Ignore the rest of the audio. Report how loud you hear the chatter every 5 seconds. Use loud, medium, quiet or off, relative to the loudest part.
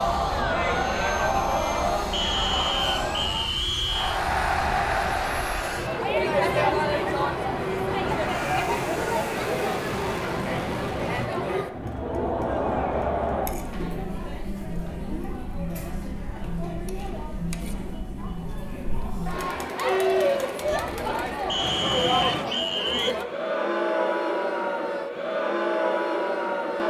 loud, loud, loud, medium, loud, loud.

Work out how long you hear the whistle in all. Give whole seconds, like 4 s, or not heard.
4 s.